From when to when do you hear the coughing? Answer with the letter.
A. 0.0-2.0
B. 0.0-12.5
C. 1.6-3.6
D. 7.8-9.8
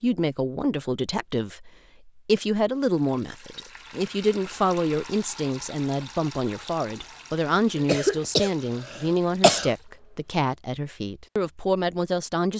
D.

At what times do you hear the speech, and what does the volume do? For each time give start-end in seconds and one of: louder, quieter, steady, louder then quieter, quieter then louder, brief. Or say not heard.
0.0-12.5 steady.